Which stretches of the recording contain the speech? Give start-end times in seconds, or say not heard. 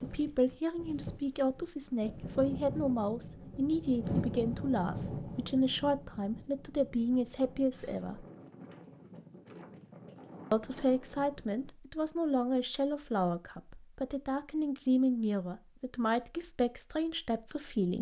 0.0-8.2, 10.5-17.9.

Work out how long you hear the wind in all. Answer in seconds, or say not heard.
12 s.